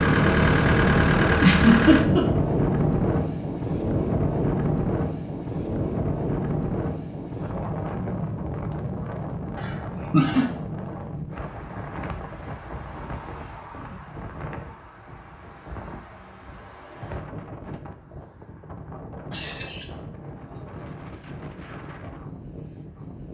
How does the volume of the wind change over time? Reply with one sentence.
The loudness of the wind goes down.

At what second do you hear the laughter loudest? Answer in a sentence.
The loudest moment of the laughter is at 2 seconds.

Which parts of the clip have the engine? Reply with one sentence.
You can hear the engine from 0.0 to 2.0 s.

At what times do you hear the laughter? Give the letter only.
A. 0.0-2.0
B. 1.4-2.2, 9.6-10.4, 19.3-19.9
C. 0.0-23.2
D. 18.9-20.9
B.